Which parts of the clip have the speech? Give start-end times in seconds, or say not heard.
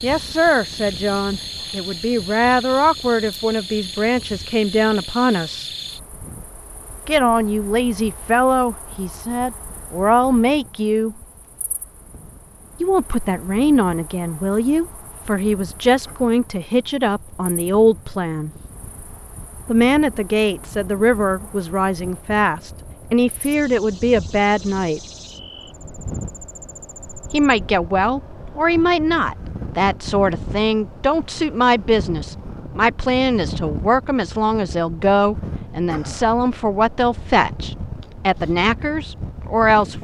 0.0-5.7, 7.0-11.2, 12.8-18.5, 19.6-25.0, 27.3-40.0.